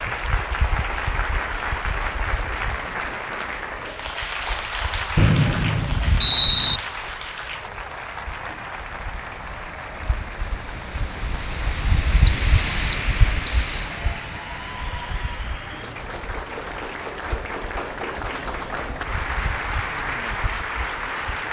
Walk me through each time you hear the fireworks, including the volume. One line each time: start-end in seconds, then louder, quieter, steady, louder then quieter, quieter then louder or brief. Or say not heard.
not heard.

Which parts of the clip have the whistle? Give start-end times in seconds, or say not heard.
5.2-6.8, 12.2-13.9.